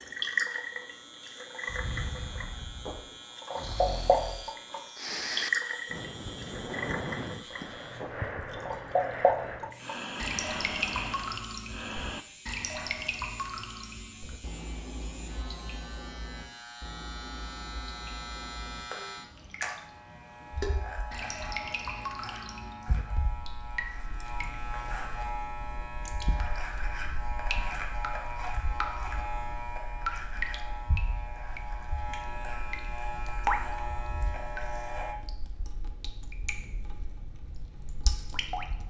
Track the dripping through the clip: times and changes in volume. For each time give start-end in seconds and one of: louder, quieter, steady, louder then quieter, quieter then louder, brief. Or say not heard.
0.0-38.8 quieter.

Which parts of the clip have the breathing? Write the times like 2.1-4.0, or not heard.
1.6-12.2.